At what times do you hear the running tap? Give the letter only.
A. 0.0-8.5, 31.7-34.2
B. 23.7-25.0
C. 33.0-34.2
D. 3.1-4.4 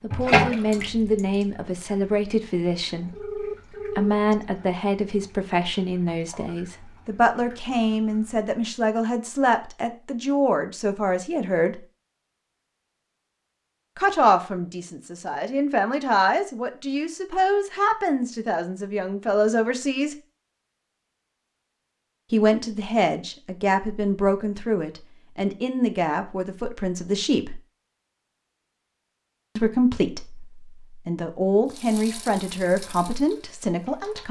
A.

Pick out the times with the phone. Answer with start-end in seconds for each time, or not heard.
3.1-4.4.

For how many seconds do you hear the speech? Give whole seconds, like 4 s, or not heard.
27 s.